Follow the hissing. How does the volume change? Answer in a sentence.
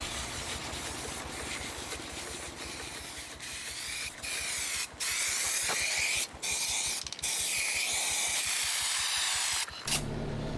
The volume of the hissing goes up.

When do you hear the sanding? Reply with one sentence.
You can hear the sanding from 0.0 to 4.2 s.